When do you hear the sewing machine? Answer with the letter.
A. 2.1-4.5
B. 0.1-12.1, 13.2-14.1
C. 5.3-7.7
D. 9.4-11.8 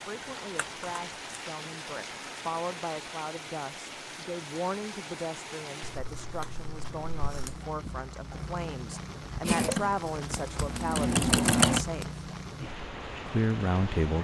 D.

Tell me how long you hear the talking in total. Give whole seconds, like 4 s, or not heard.
13 s.